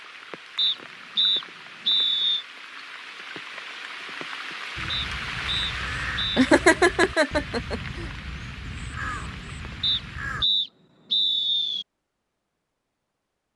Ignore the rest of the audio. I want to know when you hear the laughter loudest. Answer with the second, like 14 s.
7 s.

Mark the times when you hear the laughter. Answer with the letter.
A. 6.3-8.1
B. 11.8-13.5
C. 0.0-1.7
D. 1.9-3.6
A.